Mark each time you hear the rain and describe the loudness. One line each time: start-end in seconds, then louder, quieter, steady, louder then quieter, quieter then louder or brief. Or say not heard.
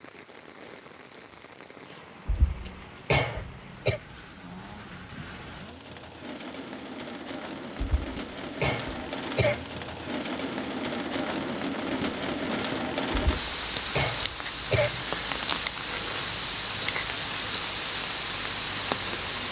0.0-19.4 louder.